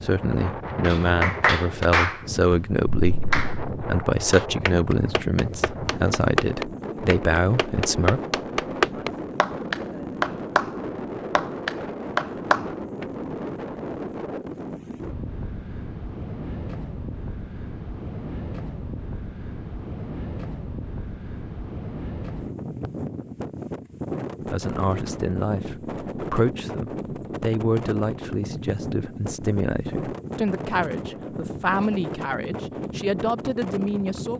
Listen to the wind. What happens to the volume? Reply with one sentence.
The volume of the wind stays about the same.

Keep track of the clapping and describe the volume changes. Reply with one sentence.
The volume of the clapping goes down, then up.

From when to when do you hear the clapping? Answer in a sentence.
You can hear the clapping from 0.8 to 13.1 s.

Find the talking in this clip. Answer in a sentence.
You can hear the talking from 0.0 to 8.2 s and from 24.4 to 34.3 s.